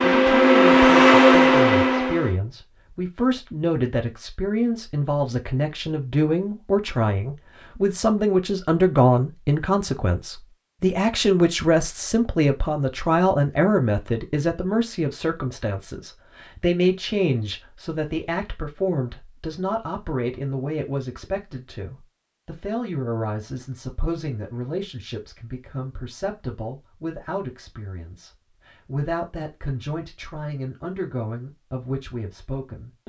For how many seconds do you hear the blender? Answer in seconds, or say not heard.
2 s.